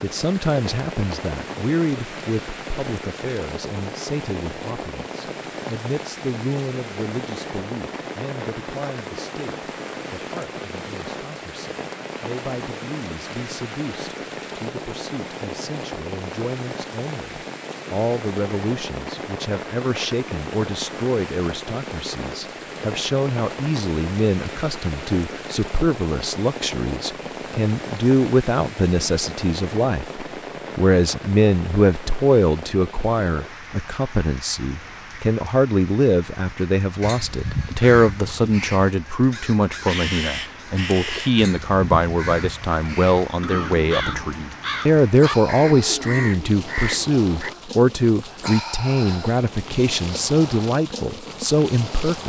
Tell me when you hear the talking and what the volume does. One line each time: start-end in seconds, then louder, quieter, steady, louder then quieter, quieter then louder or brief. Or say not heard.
0.0-52.2 louder.